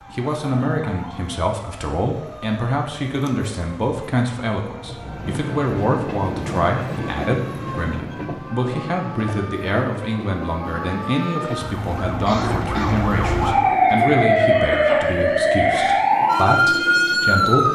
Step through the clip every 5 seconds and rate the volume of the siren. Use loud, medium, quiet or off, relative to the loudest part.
quiet, quiet, loud, loud.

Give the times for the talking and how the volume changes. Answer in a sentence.
You can hear the talking from 0.1 to 17.6 s, at a steady volume.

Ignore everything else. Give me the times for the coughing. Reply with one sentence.
The coughing can be heard from 12.2 to 13.1 s.